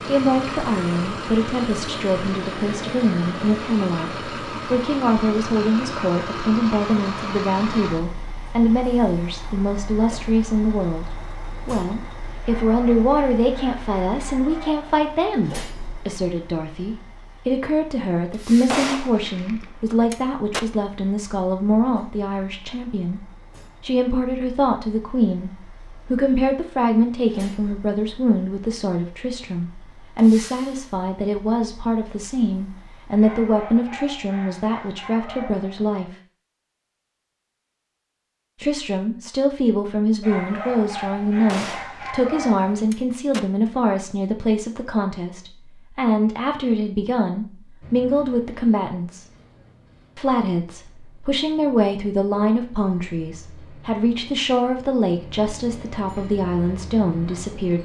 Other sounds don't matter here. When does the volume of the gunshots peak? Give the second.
19 s.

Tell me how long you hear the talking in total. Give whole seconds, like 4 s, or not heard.
54 s.